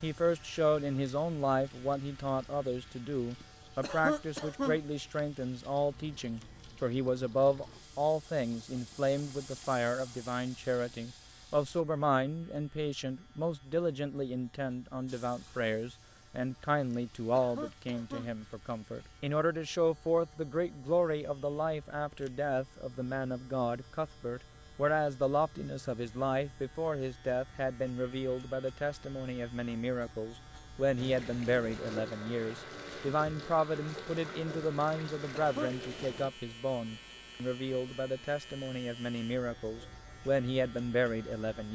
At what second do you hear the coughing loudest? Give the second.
4 s.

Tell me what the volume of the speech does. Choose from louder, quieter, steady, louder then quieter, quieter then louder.
steady.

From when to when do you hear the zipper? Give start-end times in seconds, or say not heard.
not heard.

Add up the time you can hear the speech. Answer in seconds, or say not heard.
42 s.